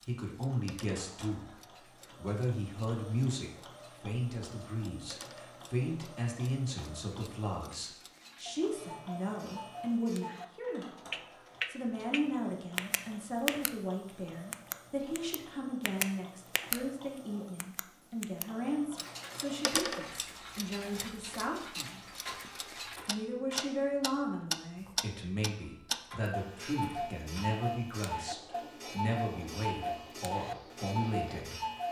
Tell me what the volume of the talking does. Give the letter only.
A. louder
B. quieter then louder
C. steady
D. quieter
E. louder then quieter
C.